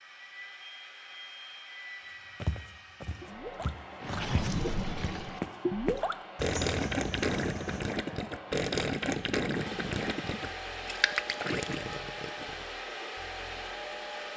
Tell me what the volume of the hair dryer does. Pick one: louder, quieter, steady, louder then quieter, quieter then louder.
louder.